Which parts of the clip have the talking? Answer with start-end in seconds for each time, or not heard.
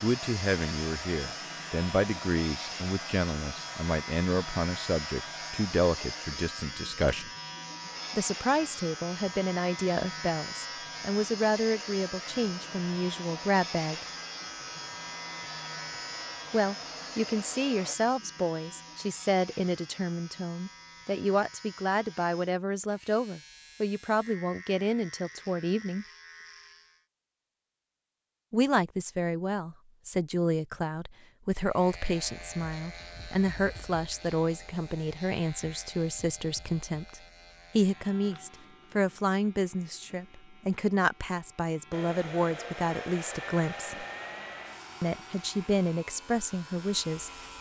0.0-7.3, 8.1-14.1, 16.5-26.1, 28.5-44.0, 45.0-47.3.